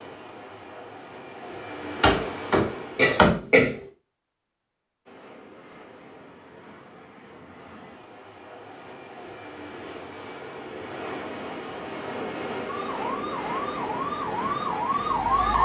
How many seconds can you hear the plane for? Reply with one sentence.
The plane can be heard for 14 seconds in total.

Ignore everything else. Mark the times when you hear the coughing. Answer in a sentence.
The coughing can be heard from 2.0 to 3.8 s.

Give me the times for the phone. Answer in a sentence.
The phone can't be heard in this clip.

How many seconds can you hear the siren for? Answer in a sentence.
You can hear the siren for 3 seconds altogether.